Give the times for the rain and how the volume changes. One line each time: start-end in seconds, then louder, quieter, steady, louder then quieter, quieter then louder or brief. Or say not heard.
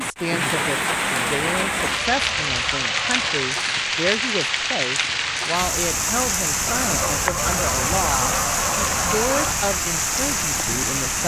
0.0-11.2 steady.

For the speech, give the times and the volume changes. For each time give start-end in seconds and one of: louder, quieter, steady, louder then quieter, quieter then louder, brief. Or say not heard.
0.0-11.2 steady.